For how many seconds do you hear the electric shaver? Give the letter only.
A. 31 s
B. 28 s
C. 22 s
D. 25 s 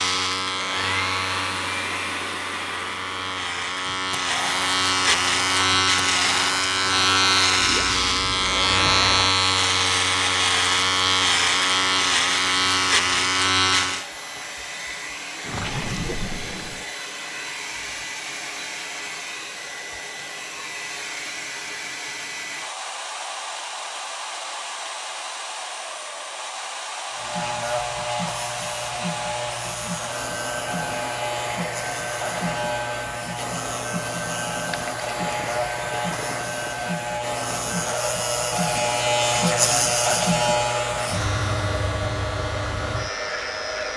A.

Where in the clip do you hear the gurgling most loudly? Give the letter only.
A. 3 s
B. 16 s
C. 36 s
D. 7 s
B.